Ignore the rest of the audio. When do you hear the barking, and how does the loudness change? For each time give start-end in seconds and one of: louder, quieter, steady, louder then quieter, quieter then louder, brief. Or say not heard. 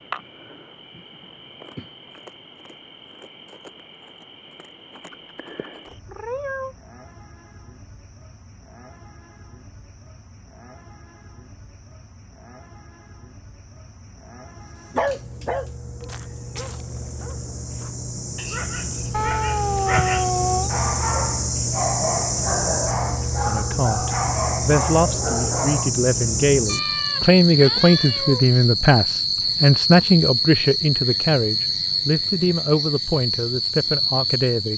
14.9-25.9 louder.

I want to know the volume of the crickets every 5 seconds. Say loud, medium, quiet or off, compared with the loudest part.
quiet, quiet, quiet, medium, loud, loud, loud.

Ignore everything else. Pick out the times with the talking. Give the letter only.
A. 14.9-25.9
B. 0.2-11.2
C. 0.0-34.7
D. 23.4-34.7
D.